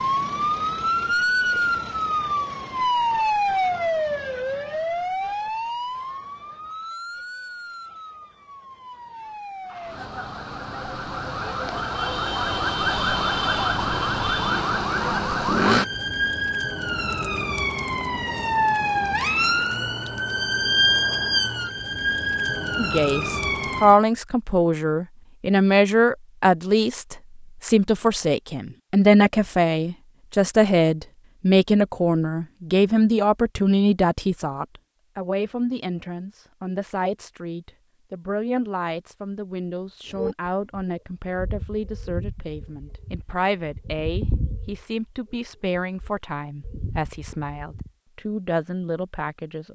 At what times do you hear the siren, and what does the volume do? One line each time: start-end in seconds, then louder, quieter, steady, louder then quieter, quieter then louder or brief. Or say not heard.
0.0-24.0 quieter then louder.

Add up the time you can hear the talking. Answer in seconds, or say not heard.
27 s.